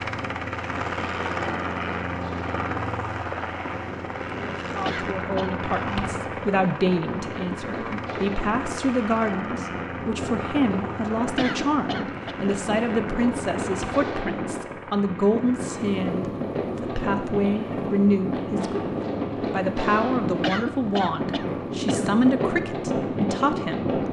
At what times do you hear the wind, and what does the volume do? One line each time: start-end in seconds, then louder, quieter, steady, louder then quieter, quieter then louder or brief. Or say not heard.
0.0-24.0 louder.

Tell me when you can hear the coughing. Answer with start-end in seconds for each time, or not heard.
4.8-5.6, 11.3-12.3, 20.4-22.1.